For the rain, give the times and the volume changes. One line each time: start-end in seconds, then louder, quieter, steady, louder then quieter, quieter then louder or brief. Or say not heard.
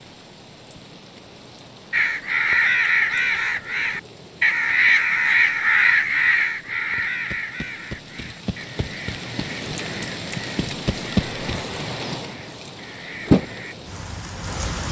0.0-14.8 louder.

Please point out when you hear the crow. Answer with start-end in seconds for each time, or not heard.
1.9-13.8.